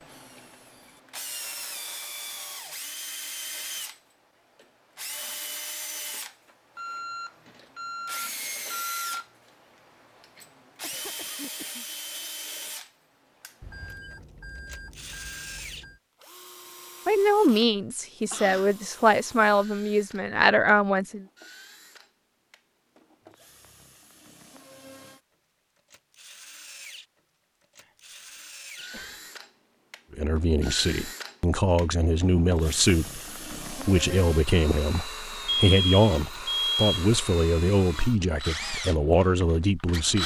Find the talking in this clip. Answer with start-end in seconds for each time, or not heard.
17.1-21.2, 30.1-40.2.